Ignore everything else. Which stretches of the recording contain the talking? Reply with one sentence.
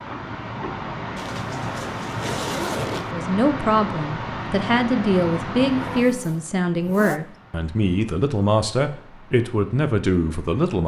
You can hear the talking from 3.1 to 10.8 s.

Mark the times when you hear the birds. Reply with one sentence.
You can't hear the birds here.